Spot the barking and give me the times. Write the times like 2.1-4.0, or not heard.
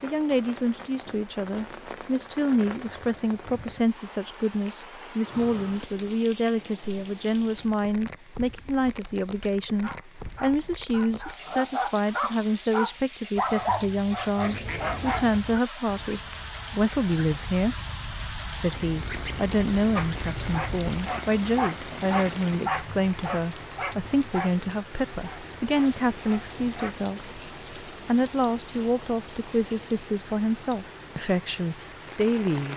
9.8-15.4, 19.9-26.9.